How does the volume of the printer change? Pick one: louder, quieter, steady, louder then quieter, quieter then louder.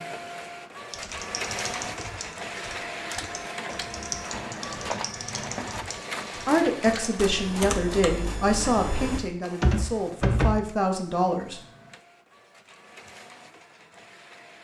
quieter.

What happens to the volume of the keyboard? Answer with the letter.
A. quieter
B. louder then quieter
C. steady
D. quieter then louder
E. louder
E.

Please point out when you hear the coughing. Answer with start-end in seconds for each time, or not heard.
not heard.